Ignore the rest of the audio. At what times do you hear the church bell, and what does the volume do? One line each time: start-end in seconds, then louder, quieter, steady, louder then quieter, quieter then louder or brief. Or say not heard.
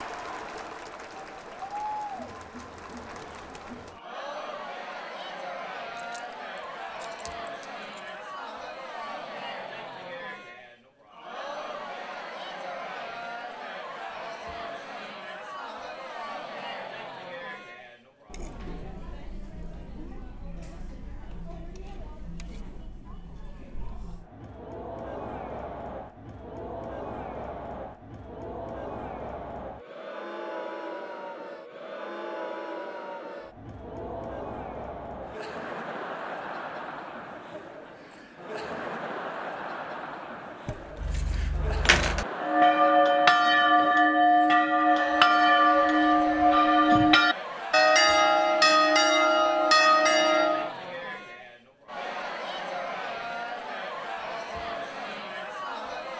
42.4-50.8 steady.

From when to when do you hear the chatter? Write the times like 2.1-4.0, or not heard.
0.0-56.1.